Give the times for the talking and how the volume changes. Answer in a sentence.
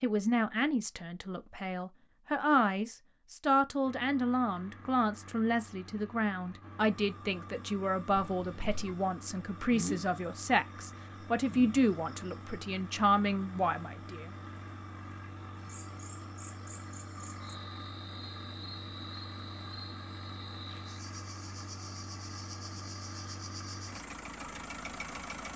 You can hear the talking from 0.0 to 14.3 s, at a steady volume.